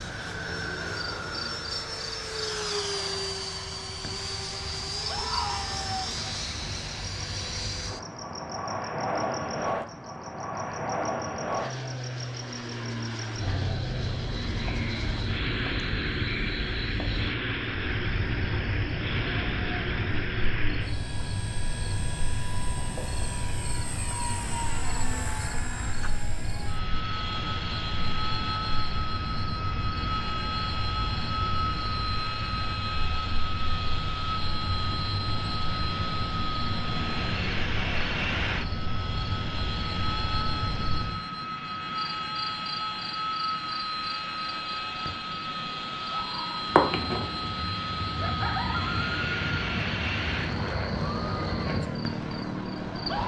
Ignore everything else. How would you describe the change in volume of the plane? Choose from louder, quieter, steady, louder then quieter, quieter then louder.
steady.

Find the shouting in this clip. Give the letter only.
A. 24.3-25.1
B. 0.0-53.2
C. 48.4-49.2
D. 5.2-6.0
D.